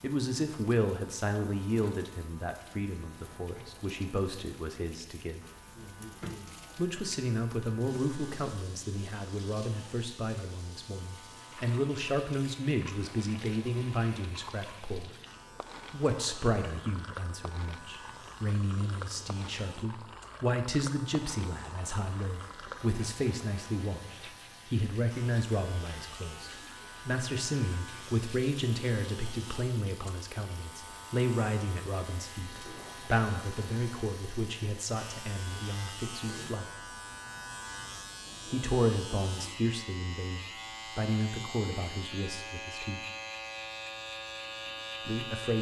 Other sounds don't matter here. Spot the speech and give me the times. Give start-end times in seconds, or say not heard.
0.0-5.4, 6.8-15.1, 15.9-36.6, 38.5-43.0, 45.0-45.5.